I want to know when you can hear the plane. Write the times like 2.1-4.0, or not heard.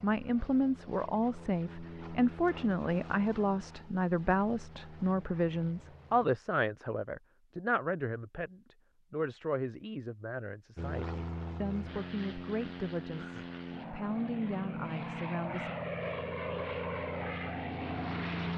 0.0-6.3, 10.8-18.5.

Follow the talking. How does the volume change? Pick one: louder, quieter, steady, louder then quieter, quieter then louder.
quieter.